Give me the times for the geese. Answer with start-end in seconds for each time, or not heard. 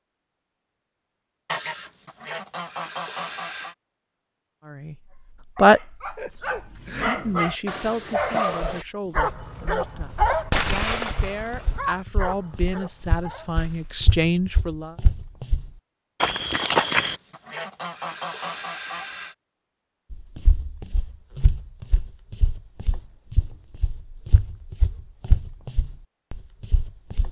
1.4-3.8, 16.8-19.4.